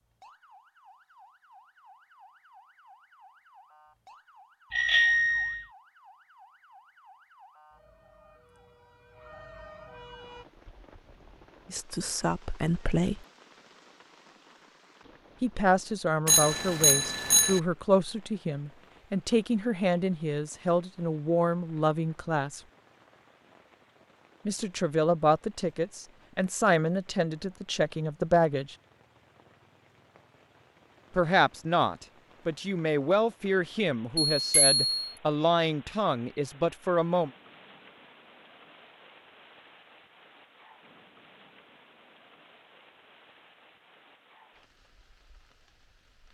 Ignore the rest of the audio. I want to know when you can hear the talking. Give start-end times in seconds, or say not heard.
11.7-13.2, 15.4-22.6, 24.4-28.8, 31.1-37.3.